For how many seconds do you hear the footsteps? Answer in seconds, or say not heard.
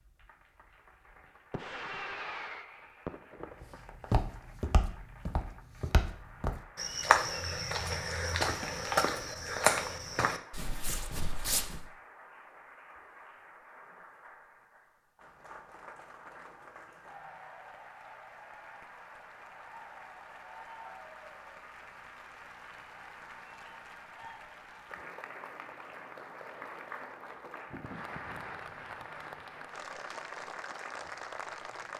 8 s.